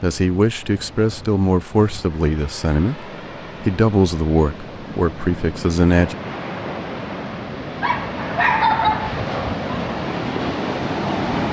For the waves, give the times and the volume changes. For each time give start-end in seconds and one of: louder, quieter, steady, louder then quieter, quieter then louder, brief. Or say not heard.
0.0-11.4 louder.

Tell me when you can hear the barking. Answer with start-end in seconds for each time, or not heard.
7.8-9.3.